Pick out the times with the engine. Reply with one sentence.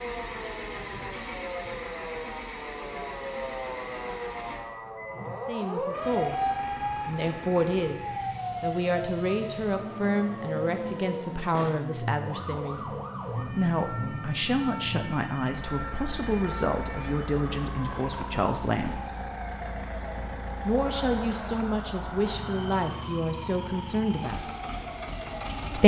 You can hear the engine from 0.0 to 25.8 s.